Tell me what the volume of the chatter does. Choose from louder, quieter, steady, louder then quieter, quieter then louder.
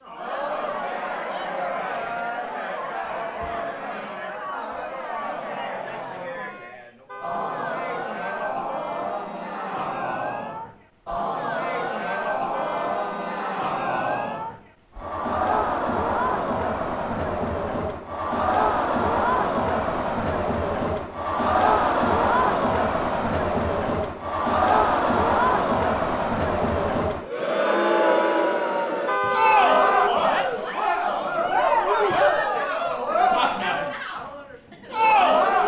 louder.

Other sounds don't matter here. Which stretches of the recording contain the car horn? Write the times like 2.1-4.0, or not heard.
7.0-7.7, 12.5-13.4, 29.1-30.1.